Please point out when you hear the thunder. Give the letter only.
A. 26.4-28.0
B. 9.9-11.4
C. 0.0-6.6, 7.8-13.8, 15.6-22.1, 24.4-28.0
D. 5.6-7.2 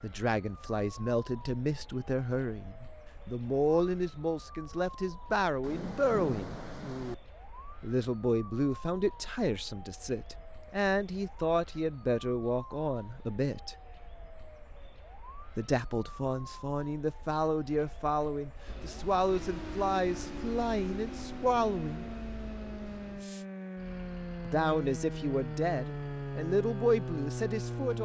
D.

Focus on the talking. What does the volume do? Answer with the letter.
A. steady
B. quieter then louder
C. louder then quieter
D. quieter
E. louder
A.